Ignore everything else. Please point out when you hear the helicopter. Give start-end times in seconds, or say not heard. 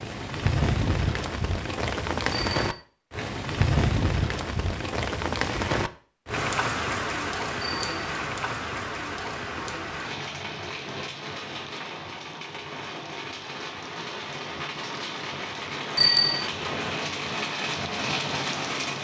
not heard.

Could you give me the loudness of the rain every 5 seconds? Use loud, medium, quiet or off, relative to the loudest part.
loud, loud, medium, loud.